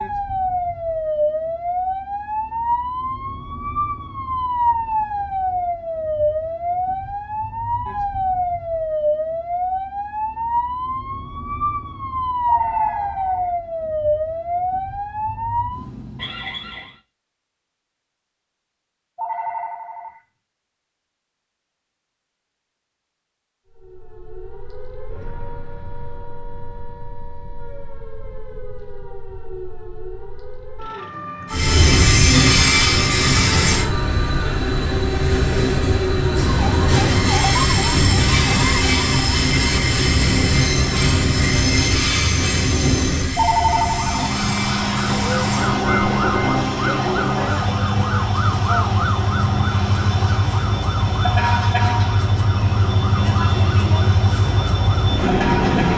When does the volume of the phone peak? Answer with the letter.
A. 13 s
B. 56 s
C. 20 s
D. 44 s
D.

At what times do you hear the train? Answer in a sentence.
You can hear the train from 31.5 to 55.9 s.